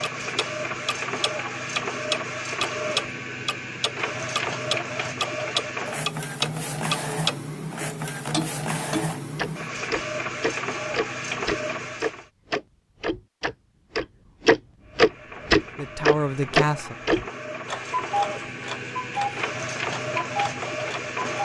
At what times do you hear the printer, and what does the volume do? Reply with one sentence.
You can hear the printer from 0.0 to 12.2 s, at a steady volume; and from 14.8 to 21.4 s, getting louder.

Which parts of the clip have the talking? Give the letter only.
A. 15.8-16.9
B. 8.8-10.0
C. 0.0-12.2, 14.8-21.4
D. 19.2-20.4
A.